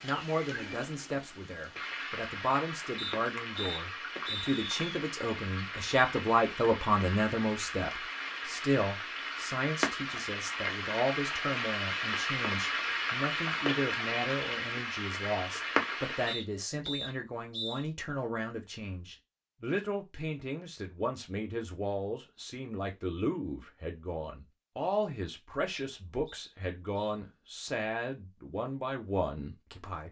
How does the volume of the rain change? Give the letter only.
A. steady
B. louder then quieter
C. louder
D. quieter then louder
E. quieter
C.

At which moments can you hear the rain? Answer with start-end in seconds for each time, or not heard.
0.0-16.5.